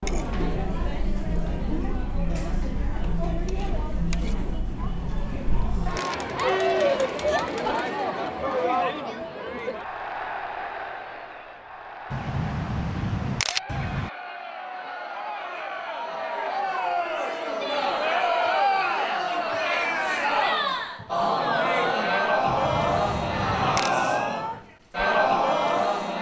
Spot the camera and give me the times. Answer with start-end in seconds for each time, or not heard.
4.7-6.6, 12.1-14.1, 22.4-23.9.